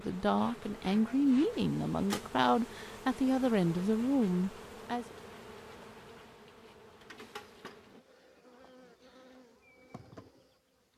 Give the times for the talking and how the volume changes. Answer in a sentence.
You can hear the talking from 0.0 to 5.0 s, at a steady volume.